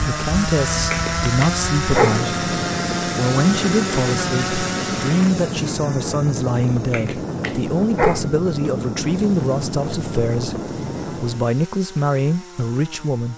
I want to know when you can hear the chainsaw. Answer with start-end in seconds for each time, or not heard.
0.0-13.3.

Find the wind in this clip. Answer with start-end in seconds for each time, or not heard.
0.0-11.6.